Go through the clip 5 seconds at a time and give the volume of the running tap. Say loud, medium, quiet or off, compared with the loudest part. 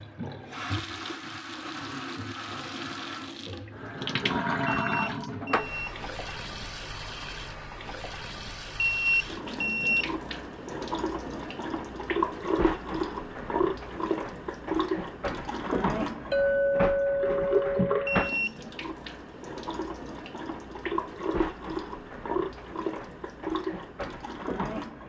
loud, medium, loud, loud, loud.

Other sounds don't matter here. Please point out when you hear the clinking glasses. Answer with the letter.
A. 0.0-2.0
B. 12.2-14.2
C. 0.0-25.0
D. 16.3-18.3
D.